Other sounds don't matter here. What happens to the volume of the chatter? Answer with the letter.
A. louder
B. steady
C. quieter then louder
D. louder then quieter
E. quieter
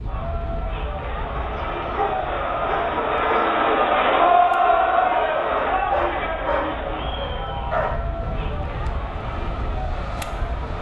D.